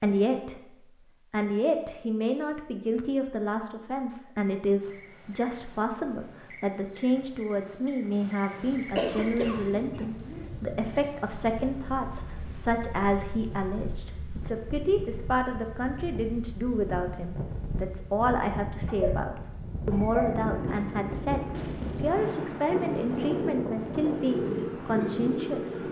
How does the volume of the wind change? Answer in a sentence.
The volume of the wind goes up.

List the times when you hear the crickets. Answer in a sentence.
The crickets can be heard from 4.8 to 25.8 s.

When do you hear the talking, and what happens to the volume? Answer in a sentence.
You can hear the talking briefly from 0.0 to 0.6 s; and from 1.3 to 25.8 s, at a steady volume.